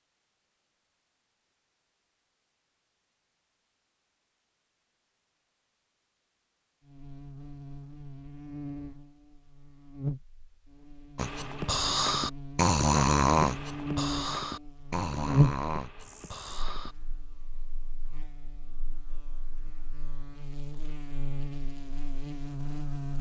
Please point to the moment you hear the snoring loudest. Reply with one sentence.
The loudest moment of the snoring is at 13 seconds.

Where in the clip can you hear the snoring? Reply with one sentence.
You can hear the snoring from 11.2 to 16.9 s.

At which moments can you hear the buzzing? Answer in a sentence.
You can hear the buzzing from 6.8 to 23.1 s.